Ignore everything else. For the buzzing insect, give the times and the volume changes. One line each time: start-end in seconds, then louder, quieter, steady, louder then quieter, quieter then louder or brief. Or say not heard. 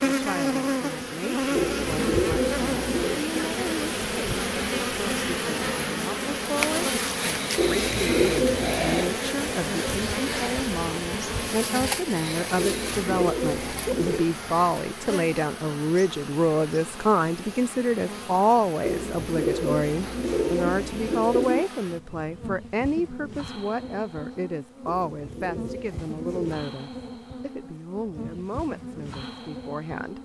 0.0-30.1 quieter.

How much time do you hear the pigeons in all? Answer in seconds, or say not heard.
10 s.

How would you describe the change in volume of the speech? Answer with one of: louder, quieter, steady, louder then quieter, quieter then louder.
louder then quieter.